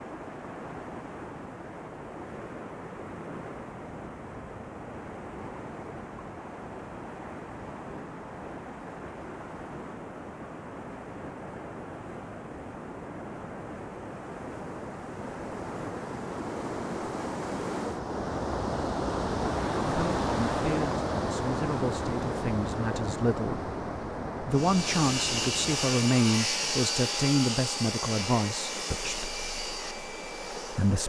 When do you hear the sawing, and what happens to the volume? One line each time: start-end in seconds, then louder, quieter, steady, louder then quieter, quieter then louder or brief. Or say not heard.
24.5-31.0 quieter.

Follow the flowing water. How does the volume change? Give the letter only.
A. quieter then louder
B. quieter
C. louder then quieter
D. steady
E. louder
C.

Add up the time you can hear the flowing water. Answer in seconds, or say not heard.
31 s.